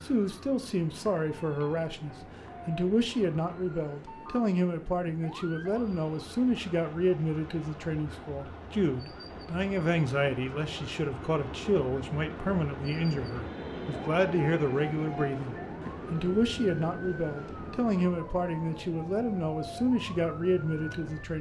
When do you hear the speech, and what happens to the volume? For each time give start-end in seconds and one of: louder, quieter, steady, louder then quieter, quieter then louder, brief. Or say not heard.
0.0-21.3 steady.